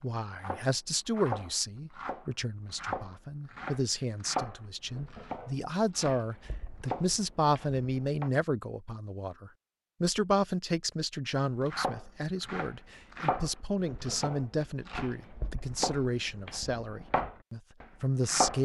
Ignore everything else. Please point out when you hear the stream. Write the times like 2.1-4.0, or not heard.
not heard.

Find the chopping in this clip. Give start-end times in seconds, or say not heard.
0.3-8.3, 11.6-18.6.